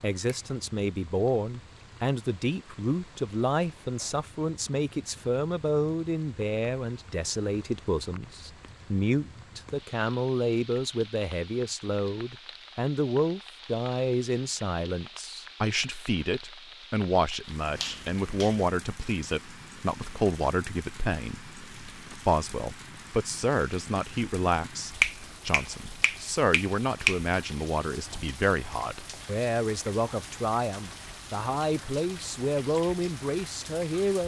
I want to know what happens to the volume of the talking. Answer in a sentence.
The loudness of the talking stays about the same.